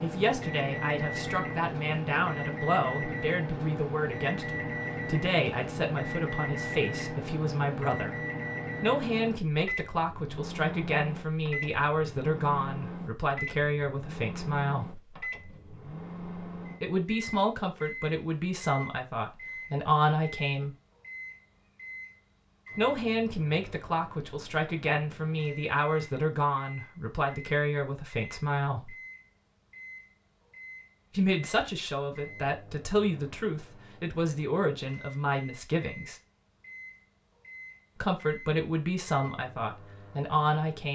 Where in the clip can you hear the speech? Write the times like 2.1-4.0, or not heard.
0.0-8.2, 8.8-15.0, 16.8-20.8, 22.8-28.9, 31.1-36.1, 38.0-40.9.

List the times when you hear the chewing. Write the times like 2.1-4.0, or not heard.
not heard.